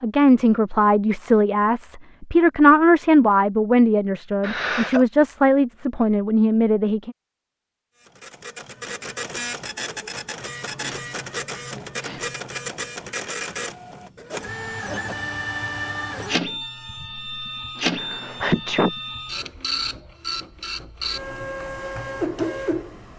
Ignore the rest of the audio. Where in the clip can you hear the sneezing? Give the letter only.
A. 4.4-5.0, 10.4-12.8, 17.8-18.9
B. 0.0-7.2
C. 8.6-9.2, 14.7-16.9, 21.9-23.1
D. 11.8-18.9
A.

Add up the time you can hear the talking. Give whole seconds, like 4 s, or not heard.
7 s.